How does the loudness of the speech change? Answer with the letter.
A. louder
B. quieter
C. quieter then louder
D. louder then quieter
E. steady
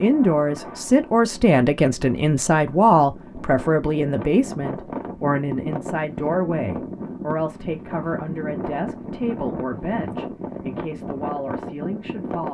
B.